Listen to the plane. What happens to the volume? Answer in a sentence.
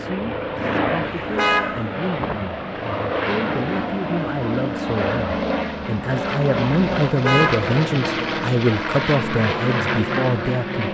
The loudness of the plane stays about the same.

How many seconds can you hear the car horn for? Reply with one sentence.
You can hear the car horn for 2 seconds altogether.